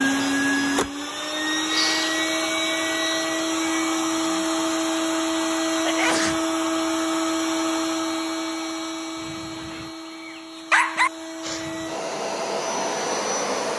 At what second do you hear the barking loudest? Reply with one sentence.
The loudest moment of the barking is at 11 seconds.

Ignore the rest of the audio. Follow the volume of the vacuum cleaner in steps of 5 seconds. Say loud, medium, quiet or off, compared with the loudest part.
loud, loud, medium.